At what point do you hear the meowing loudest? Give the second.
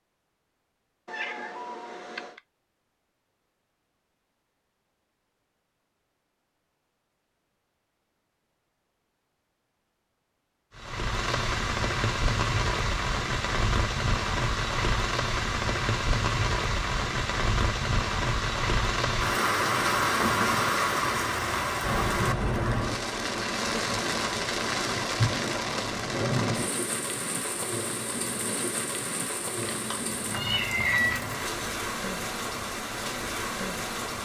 31 s.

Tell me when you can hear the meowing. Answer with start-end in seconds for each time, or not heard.
1.1-2.4, 29.6-31.2.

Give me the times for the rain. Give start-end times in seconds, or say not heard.
10.8-34.2.